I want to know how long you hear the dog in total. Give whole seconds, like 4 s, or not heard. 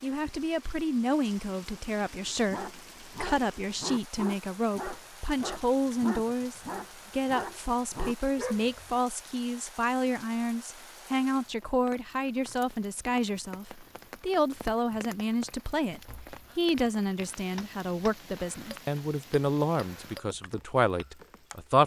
7 s.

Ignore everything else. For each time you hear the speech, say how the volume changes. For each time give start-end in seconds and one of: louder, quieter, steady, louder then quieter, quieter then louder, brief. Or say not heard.
0.0-21.8 steady.